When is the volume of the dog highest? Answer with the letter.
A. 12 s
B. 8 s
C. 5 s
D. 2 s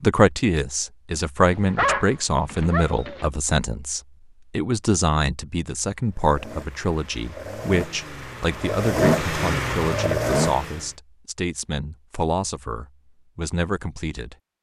D.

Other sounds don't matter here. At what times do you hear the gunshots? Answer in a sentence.
The gunshots can't be heard in this clip.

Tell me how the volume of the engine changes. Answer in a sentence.
The loudness of the engine goes up.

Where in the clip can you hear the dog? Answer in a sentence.
The dog can be heard from 1.5 to 3.3 s.